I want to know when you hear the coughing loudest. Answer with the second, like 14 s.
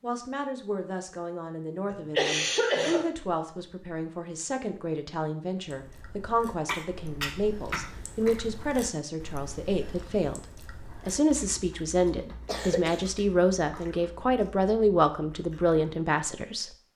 2 s.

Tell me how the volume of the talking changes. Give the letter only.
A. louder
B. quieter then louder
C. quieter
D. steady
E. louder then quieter
A.